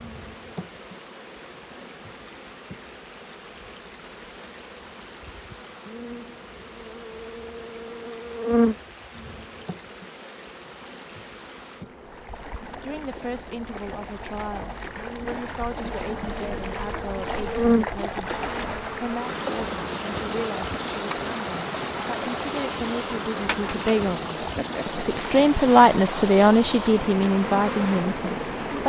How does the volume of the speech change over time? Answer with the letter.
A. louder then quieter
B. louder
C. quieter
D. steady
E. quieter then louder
B.